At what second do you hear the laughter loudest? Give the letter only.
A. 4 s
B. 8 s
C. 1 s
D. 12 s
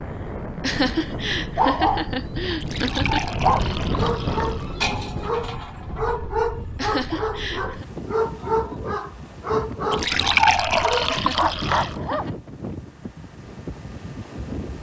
C.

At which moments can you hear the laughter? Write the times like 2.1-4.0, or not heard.
0.6-3.2, 6.8-7.8, 11.1-12.3.